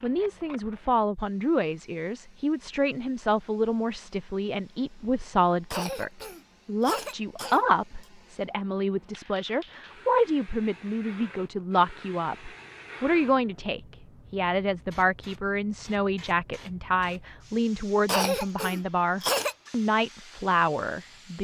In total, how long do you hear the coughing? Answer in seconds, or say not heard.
4 s.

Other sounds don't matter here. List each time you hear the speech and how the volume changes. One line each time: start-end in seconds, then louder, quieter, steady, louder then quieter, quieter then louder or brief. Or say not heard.
0.0-21.4 steady.